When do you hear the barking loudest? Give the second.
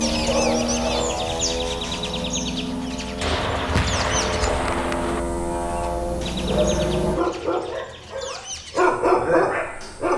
9 s.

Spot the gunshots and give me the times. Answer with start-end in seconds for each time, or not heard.
3.2-5.2.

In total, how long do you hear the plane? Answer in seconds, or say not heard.
7 s.